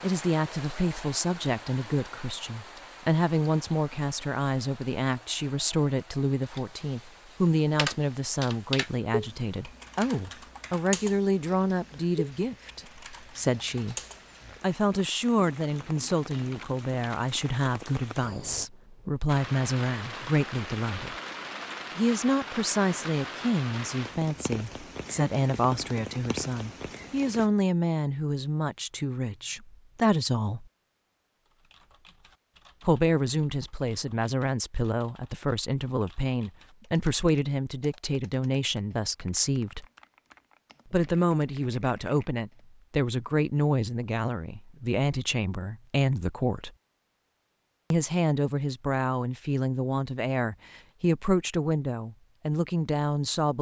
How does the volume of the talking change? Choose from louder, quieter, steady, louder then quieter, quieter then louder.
steady.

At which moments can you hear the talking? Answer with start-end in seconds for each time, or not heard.
0.0-13.9, 14.6-21.1, 21.9-30.6, 32.8-39.9, 40.9-46.7, 47.9-53.5.